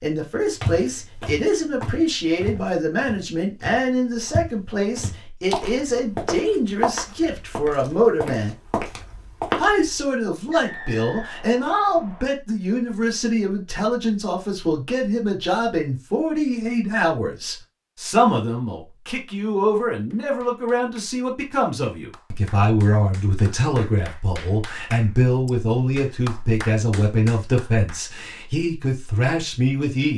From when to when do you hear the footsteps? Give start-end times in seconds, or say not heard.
0.6-10.1.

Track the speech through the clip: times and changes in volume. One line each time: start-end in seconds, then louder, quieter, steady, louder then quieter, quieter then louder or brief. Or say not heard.
0.0-8.6 steady
9.6-30.1 steady.